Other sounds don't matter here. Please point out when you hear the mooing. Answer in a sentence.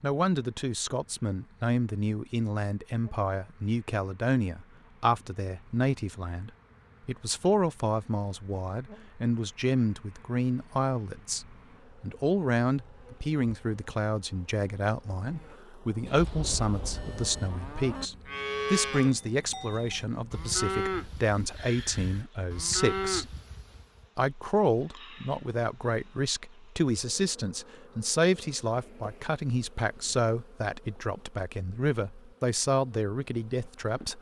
The mooing can be heard from 15.2 to 24.1 s.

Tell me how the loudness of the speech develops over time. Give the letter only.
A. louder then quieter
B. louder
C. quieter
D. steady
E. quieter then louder
D.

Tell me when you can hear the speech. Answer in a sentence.
The speech can be heard from 0.0 to 23.3 s and from 24.1 to 34.1 s.